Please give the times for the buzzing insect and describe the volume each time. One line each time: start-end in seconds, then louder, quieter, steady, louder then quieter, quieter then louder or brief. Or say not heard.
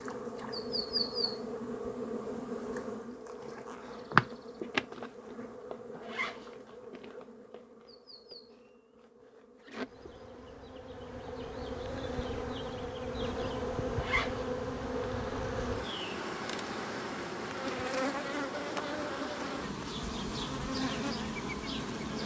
0.0-22.2 quieter then louder.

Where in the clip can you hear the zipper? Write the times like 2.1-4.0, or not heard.
6.0-6.5, 13.9-14.4.